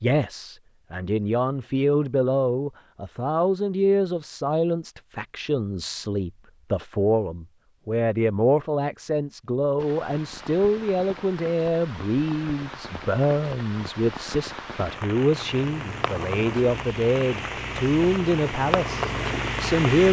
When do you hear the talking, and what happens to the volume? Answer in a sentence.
The talking can be heard from 0.0 to 20.0 s, at a steady volume.